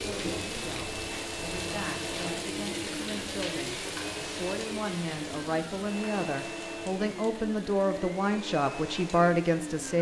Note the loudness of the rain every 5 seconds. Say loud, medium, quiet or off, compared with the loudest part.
loud, medium.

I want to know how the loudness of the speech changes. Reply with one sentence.
The volume of the speech goes up.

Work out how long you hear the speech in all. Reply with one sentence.
You can hear the speech for 10 seconds altogether.